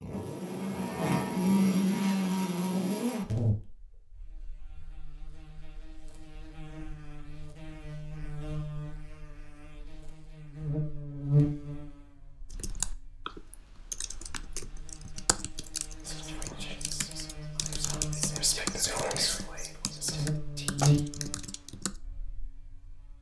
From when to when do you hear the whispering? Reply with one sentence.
You can hear the whispering from 16.0 to 21.1 s.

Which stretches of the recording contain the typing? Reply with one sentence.
You can hear the typing from 12.5 to 21.9 s.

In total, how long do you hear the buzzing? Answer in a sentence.
You can hear the buzzing for 23 seconds altogether.